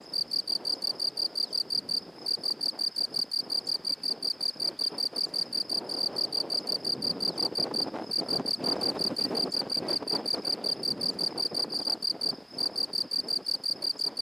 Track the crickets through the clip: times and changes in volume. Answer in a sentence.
The crickets can be heard from 0.0 to 14.1 s, at a steady volume.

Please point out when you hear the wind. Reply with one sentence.
The wind can be heard from 0.0 to 14.1 s.